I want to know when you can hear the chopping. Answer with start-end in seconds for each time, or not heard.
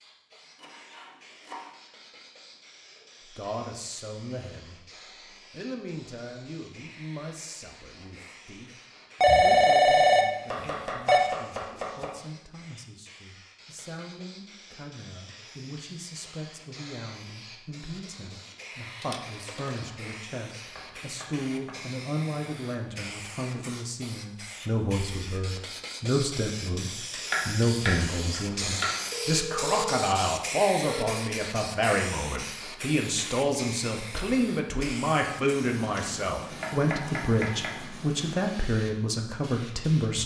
0.6-1.7, 10.5-12.1, 20.8-21.8, 27.3-28.9, 36.6-37.8.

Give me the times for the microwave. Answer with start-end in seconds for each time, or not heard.
not heard.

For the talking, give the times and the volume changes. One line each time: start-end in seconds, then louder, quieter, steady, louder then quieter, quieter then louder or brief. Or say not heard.
3.3-4.8 brief
5.5-40.2 louder.